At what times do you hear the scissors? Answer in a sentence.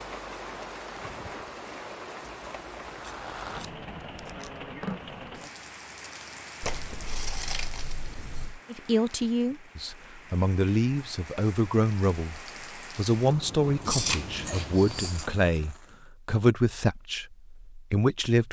The scissors can be heard from 2.5 to 4.5 s, from 6.6 to 8.6 s and from 13.8 to 15.2 s.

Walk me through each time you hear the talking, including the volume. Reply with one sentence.
You can hear the talking from 8.7 to 18.4 s, at a steady volume.